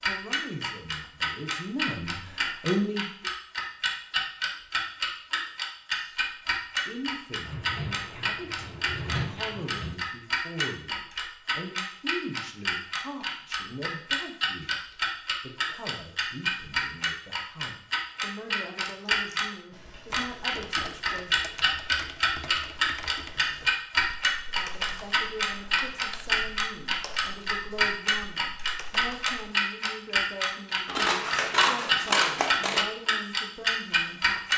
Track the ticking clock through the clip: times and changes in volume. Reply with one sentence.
The ticking clock can be heard from 0.0 to 19.4 s, at a steady volume; and from 20.1 to 34.5 s, at a steady volume.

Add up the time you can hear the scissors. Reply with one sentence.
You can hear the scissors for 5 seconds altogether.